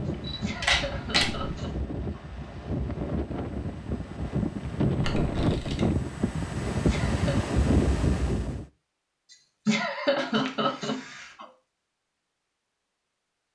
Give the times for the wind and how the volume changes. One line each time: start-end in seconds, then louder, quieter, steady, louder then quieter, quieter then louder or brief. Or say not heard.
0.0-8.7 louder.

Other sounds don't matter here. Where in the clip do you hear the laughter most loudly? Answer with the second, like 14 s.
10 s.